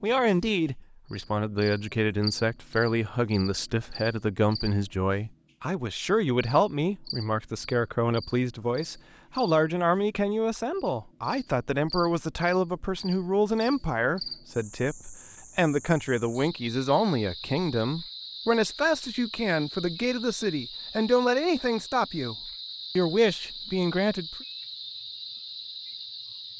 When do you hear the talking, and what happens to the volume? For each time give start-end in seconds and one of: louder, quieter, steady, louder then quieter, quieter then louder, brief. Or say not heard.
0.0-22.4 steady
22.9-24.4 brief.